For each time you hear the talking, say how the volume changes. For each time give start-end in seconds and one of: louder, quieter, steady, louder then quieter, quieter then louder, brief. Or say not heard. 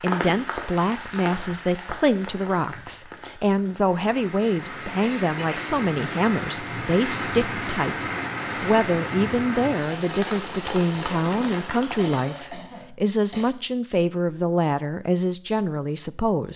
0.0-16.5 steady.